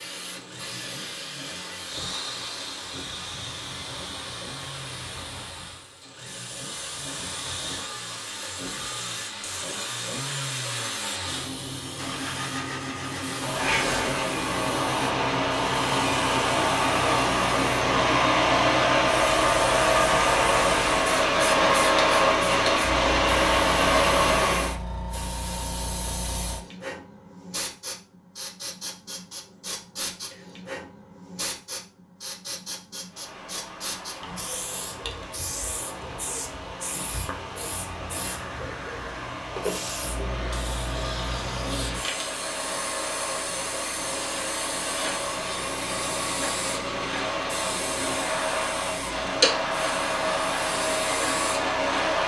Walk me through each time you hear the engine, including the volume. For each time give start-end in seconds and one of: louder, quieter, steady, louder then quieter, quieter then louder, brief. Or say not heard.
0.0-24.8 louder
33.0-52.2 louder.